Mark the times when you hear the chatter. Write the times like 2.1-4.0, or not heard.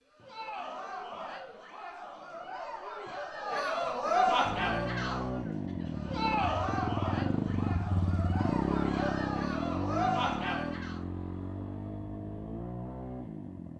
0.1-11.0.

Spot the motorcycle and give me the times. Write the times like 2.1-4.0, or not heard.
4.4-13.7.